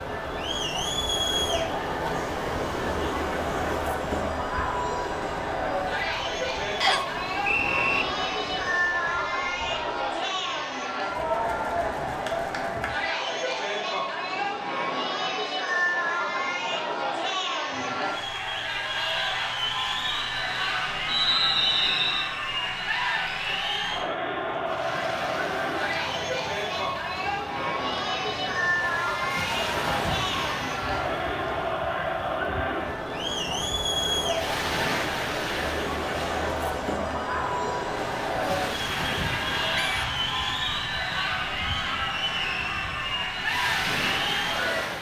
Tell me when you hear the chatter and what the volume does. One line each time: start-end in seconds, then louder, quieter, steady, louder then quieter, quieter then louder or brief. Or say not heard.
0.0-44.9 steady.